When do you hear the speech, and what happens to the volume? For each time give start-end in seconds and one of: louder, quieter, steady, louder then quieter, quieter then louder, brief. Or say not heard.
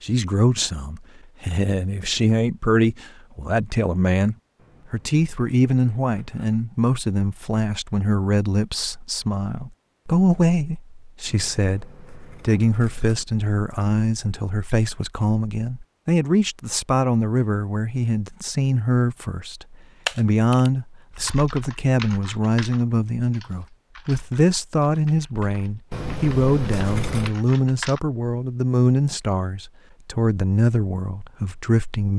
0.0-32.1 steady.